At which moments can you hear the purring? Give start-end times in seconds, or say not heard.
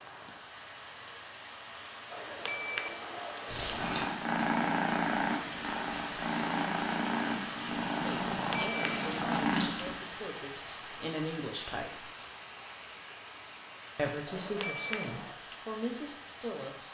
3.5-9.9.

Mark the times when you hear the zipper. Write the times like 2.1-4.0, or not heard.
not heard.